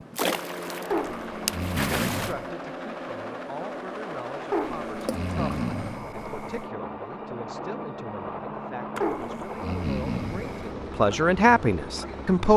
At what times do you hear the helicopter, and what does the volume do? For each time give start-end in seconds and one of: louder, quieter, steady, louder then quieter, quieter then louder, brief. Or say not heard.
0.0-12.5 steady.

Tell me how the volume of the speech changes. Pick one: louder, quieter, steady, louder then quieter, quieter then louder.
louder.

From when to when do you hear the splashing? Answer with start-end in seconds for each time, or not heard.
0.1-2.4, 5.0-5.7, 8.9-9.6.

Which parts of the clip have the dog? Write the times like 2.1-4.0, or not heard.
0.9-2.5, 4.5-6.7, 9.0-10.7.